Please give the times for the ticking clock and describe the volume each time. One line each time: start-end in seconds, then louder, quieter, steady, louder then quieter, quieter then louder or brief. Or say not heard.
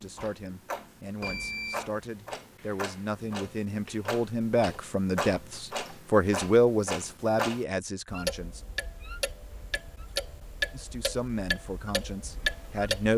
0.0-13.1 louder.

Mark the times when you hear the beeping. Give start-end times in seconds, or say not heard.
1.2-1.9.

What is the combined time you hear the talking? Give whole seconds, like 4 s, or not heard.
11 s.